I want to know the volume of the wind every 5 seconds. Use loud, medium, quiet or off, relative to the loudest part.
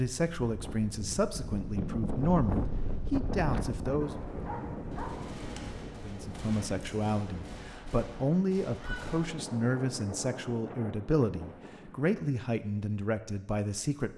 loud, medium, medium.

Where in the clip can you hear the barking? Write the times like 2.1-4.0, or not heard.
4.0-5.8.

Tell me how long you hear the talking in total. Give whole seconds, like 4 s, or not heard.
12 s.